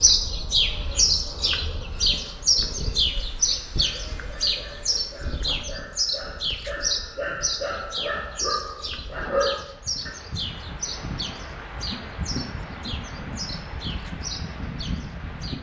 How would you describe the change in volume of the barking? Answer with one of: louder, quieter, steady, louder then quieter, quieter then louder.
louder.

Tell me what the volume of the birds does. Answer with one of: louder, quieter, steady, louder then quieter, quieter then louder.
quieter.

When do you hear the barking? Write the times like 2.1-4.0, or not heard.
3.8-10.2.